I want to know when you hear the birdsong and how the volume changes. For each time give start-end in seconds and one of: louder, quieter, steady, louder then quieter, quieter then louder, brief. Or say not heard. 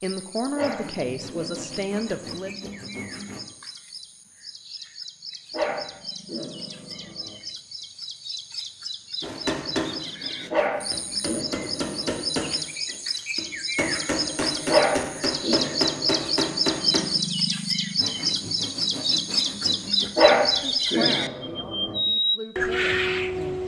0.0-23.6 louder.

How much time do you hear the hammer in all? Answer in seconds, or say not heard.
8 s.